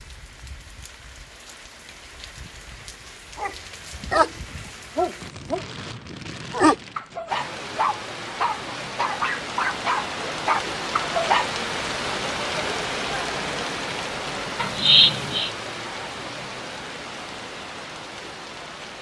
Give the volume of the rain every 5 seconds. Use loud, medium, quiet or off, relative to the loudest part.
quiet, medium, loud, medium.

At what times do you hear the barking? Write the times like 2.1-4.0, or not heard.
3.4-11.5.